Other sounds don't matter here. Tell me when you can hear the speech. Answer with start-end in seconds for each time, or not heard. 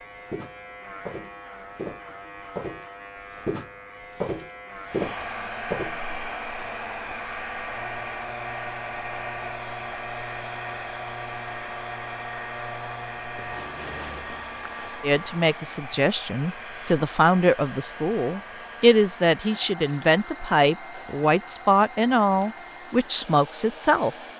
15.0-24.1.